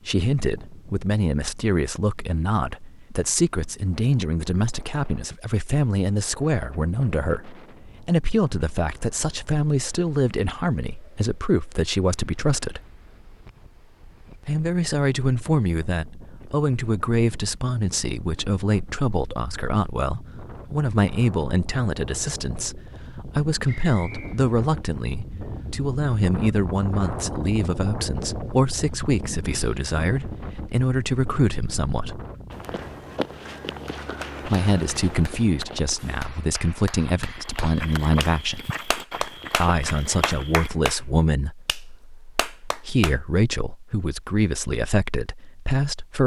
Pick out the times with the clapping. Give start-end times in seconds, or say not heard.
33.8-43.1.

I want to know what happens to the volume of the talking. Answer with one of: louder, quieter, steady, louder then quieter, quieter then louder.
steady.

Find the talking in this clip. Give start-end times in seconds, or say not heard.
0.1-12.8, 14.4-32.2, 34.5-38.6, 39.6-46.2.